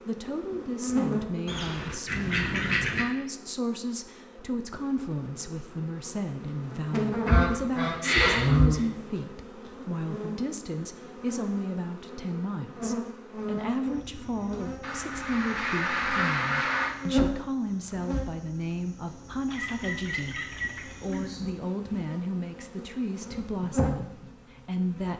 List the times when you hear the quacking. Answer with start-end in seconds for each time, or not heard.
1.4-3.0, 7.2-8.8, 14.8-16.9, 19.4-21.2.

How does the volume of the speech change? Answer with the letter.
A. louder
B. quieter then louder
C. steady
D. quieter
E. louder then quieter
C.